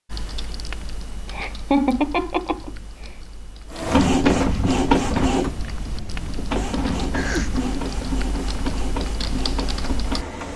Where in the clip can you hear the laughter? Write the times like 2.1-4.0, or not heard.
1.3-2.7, 7.3-7.9.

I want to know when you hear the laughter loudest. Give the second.
2 s.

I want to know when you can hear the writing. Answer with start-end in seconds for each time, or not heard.
not heard.